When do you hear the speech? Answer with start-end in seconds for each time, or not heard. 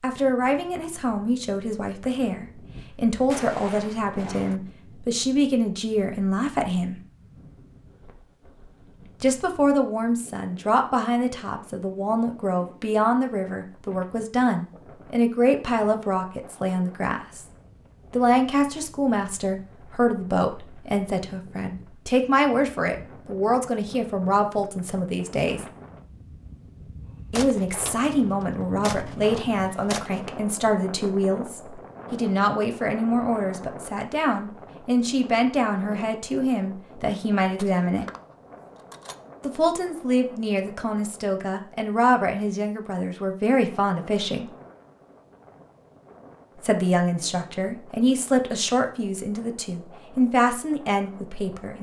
0.0-7.0, 9.2-17.4, 18.1-25.6, 27.3-38.0, 39.4-44.5, 46.6-51.7.